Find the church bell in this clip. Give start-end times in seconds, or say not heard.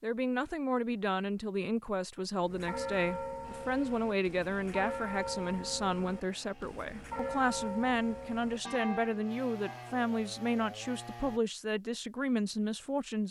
2.4-10.0.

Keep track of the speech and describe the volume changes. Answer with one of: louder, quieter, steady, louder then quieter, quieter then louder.
steady.